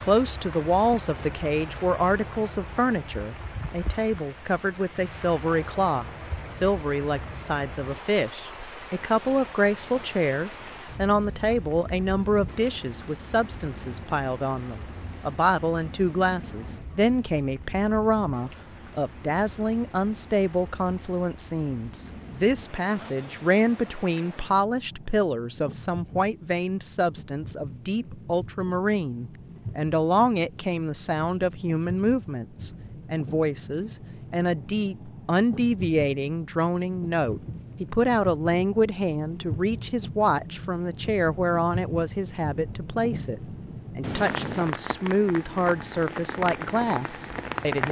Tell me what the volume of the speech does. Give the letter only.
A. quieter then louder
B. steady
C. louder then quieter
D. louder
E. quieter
B.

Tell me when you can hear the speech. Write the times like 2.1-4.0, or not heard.
0.0-47.8.